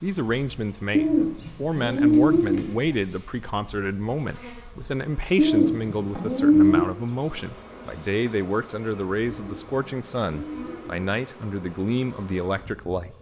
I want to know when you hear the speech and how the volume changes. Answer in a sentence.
The speech can be heard from 0.0 to 13.1 s, at a steady volume.